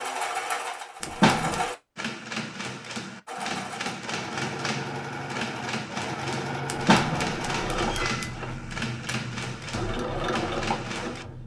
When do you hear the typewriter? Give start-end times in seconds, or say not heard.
1.9-11.2.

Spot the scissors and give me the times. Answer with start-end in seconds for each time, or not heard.
1.0-1.6, 6.7-8.3.